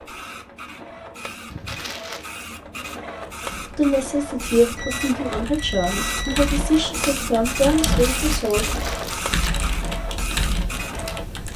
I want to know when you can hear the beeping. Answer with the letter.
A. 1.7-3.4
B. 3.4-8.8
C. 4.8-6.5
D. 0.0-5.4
C.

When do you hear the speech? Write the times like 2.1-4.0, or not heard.
3.4-8.8.